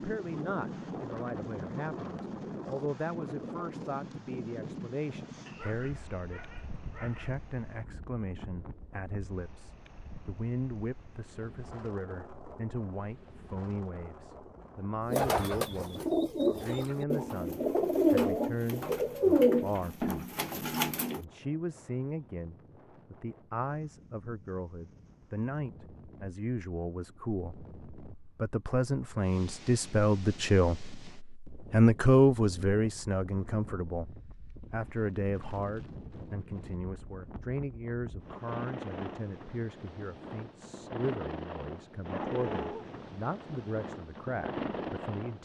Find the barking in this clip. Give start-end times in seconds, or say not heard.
5.5-7.4, 42.1-42.9.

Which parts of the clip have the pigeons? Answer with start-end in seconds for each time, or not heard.
15.1-21.2.